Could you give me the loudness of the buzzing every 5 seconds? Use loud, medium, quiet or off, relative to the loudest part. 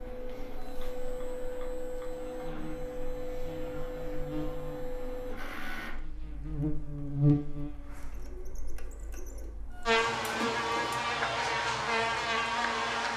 quiet, loud, loud.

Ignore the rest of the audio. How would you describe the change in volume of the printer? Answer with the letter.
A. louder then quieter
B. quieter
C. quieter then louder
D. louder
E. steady
C.